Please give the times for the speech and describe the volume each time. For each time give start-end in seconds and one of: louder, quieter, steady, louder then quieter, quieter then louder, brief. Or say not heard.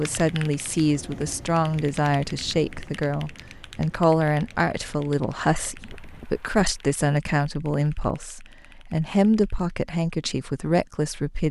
0.0-11.4 steady.